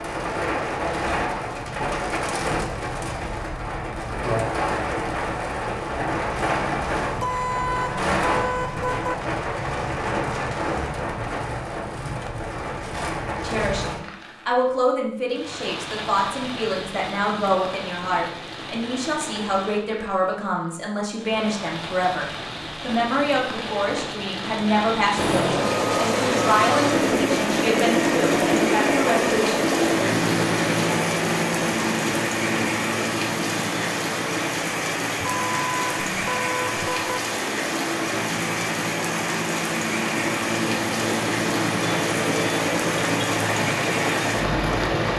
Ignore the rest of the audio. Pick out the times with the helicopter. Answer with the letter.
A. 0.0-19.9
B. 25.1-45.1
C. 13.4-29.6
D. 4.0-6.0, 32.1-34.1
B.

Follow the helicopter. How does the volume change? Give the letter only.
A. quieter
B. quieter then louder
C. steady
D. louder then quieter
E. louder
B.